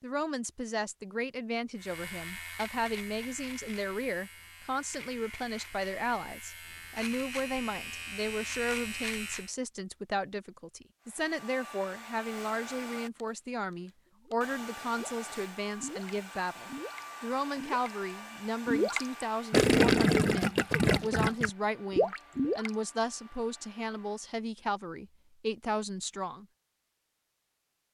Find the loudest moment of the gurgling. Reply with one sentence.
The loudest moment of the gurgling is at 20 seconds.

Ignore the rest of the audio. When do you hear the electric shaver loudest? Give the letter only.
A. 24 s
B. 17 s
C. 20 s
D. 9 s
D.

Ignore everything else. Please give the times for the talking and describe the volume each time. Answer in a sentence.
You can hear the talking from 0.0 to 26.4 s, at a steady volume.